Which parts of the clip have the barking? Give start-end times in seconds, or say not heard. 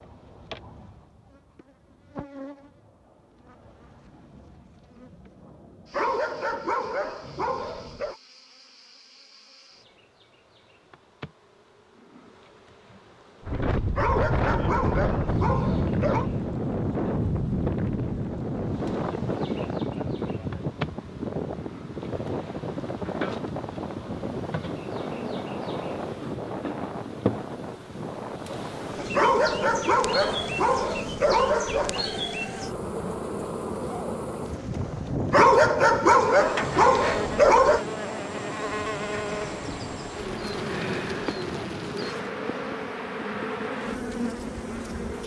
5.9-8.2, 13.9-16.3, 29.1-32.0, 35.3-37.9.